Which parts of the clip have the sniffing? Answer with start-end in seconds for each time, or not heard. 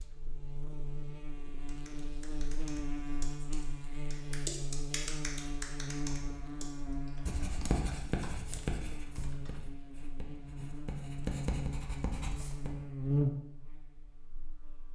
not heard.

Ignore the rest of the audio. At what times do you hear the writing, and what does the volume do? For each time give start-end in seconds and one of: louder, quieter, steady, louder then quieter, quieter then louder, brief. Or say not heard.
7.2-12.7 quieter then louder.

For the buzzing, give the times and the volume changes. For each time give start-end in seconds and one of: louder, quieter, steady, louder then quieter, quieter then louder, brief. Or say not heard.
0.0-14.9 louder.